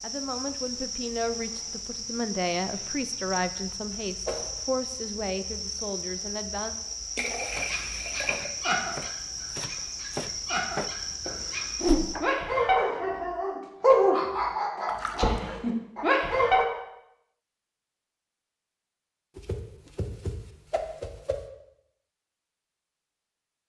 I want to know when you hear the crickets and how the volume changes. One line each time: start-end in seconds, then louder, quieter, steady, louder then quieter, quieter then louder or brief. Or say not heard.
0.0-12.2 steady.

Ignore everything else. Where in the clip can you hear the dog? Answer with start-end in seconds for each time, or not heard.
7.7-16.6.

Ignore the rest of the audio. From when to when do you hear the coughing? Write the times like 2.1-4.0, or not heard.
not heard.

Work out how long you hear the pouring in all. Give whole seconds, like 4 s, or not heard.
2 s.